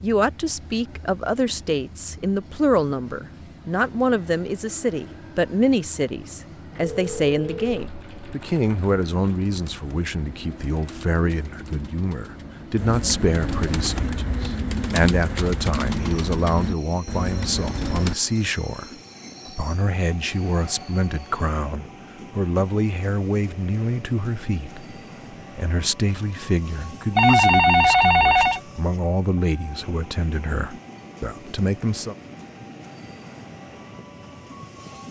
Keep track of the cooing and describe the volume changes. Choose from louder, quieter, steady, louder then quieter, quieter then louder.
louder.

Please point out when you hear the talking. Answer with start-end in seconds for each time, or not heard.
0.0-24.9, 25.6-32.1.